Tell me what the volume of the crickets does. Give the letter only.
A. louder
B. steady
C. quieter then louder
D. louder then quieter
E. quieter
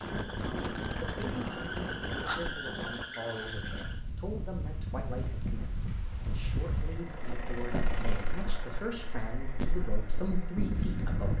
E.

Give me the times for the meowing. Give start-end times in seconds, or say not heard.
not heard.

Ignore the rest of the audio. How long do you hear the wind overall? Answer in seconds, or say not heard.
11 s.